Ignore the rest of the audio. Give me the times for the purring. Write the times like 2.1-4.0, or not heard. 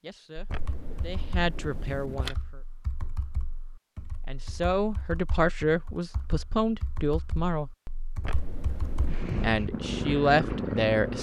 8.8-11.1.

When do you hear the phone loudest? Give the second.
2 s.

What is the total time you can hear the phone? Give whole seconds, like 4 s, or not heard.
3 s.